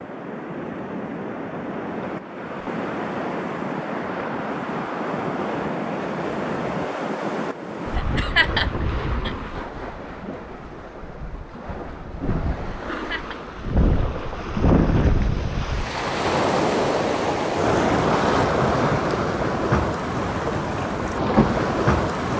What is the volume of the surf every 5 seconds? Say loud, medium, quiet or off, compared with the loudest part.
medium, medium, medium, loud, loud.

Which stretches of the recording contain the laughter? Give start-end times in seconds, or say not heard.
8.0-9.3, 12.7-13.3.